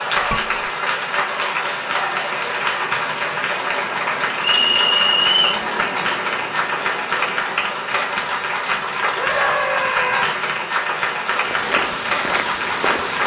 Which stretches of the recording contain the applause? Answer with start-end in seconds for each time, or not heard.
0.0-13.2.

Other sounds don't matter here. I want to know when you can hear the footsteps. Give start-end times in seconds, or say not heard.
11.4-13.2.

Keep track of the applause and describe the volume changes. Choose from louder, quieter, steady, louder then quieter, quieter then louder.
steady.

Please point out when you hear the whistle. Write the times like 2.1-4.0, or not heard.
4.5-5.7.